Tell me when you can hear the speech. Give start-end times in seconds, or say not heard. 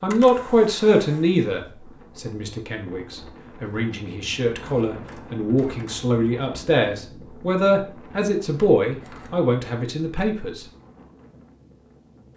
0.0-10.7.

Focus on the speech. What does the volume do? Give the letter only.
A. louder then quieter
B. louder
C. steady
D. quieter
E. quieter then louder
E.